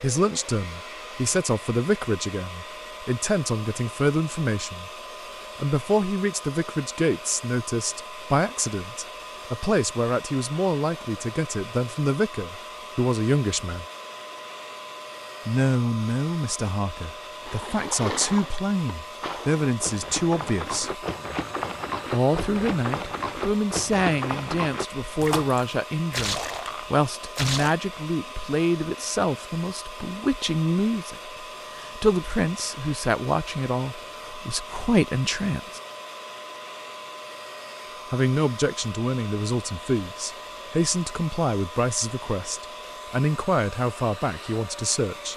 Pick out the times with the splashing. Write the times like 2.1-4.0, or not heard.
17.4-27.8.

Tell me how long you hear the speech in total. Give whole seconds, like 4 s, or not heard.
40 s.